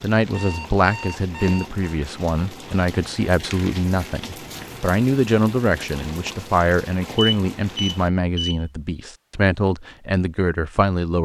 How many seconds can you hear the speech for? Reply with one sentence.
You can hear the speech for 11 seconds altogether.